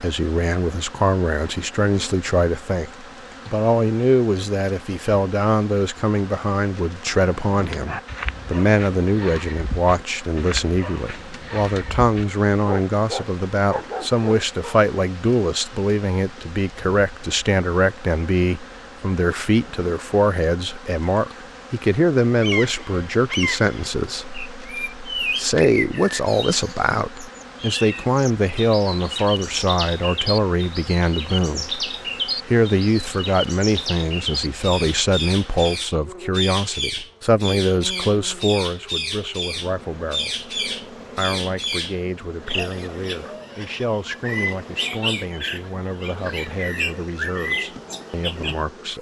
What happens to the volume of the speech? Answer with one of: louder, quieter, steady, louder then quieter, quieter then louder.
quieter.